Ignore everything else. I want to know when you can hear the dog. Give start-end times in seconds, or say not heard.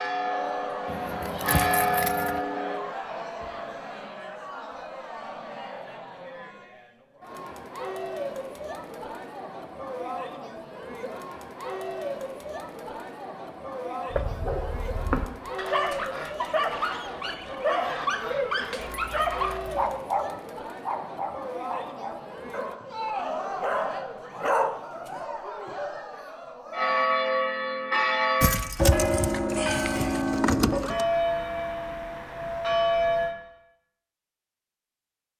14.1-25.2.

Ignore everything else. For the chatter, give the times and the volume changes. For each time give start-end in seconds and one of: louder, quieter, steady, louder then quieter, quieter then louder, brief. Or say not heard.
0.0-27.1 steady.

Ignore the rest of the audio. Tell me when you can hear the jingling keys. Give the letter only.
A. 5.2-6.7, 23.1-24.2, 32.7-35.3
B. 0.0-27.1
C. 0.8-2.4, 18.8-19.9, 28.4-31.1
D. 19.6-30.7
C.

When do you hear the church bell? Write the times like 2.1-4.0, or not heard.
0.0-2.8, 26.7-33.4.